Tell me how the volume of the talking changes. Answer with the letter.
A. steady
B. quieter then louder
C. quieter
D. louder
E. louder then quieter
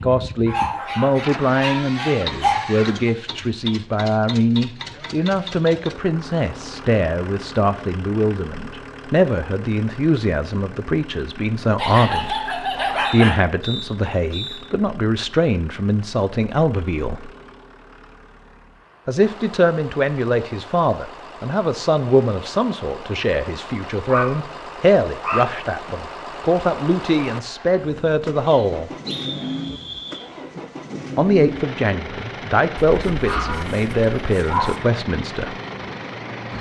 A.